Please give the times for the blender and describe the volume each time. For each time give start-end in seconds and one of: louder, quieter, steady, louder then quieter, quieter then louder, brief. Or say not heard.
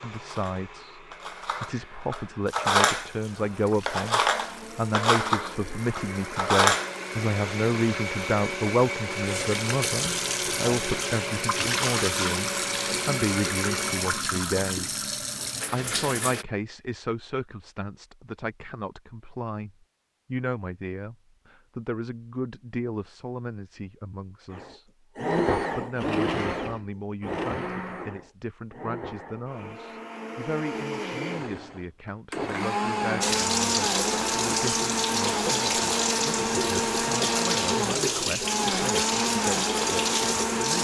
0.0-14.2 louder
24.5-40.8 quieter then louder.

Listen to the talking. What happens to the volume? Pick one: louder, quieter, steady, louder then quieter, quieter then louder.
quieter.